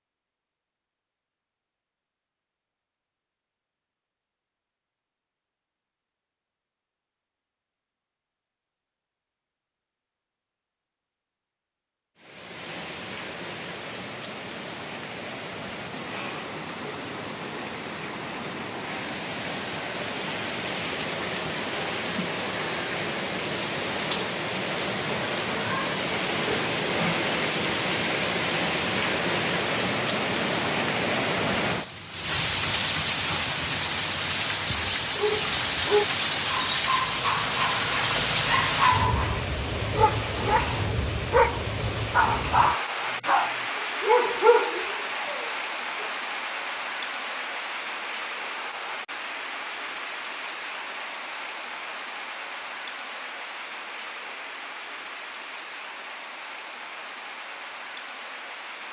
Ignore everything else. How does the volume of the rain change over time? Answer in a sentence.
The volume of the rain goes up, then down.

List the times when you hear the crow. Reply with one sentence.
The crow can't be heard in this clip.